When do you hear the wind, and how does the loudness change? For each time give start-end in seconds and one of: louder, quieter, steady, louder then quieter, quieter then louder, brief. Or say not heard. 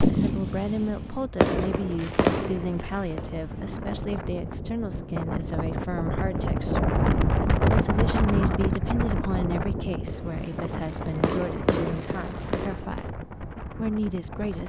0.2-14.6 louder then quieter.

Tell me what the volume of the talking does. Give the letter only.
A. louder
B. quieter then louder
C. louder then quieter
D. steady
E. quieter
D.